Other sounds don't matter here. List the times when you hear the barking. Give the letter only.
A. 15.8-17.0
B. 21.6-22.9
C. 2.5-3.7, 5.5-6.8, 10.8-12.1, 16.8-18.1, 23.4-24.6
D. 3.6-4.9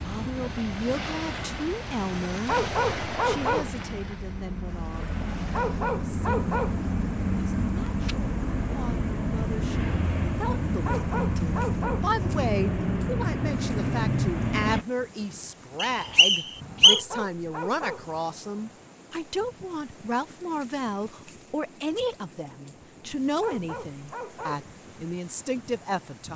C.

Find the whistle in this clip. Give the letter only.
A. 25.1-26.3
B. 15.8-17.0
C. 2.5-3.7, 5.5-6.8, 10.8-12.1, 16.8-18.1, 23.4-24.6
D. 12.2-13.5
B.